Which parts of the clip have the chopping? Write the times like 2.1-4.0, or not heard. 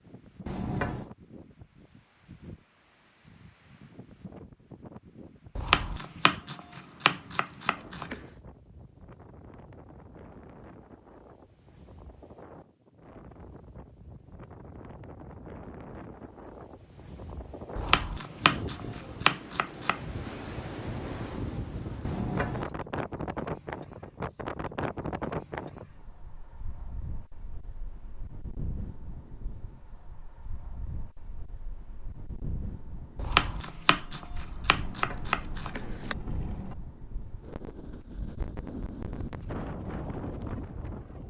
5.5-8.2, 17.8-20.0, 33.1-36.1.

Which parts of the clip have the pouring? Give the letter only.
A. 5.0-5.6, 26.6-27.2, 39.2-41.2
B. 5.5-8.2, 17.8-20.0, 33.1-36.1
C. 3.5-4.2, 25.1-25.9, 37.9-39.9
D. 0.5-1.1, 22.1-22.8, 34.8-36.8
D.